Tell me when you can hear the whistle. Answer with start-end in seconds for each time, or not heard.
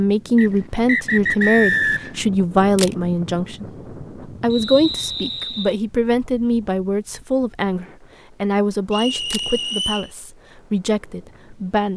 0.3-2.2, 4.5-5.8, 8.9-10.1.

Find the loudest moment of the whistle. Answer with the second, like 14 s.
2 s.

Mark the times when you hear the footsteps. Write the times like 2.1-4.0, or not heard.
not heard.